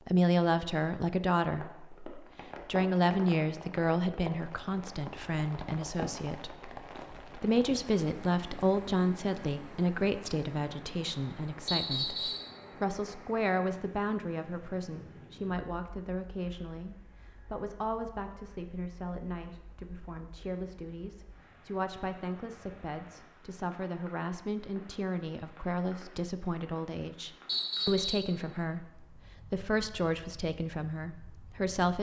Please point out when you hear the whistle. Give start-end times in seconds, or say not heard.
11.7-12.5, 27.4-28.3.